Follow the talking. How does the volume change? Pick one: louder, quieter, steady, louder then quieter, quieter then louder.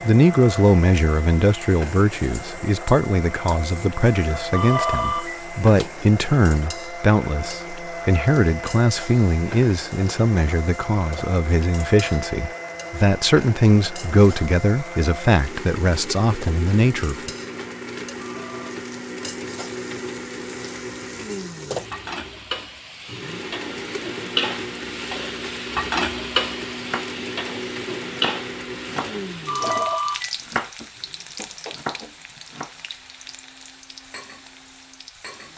steady.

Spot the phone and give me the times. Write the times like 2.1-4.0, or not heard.
4.5-5.9, 18.1-18.8, 29.4-30.4.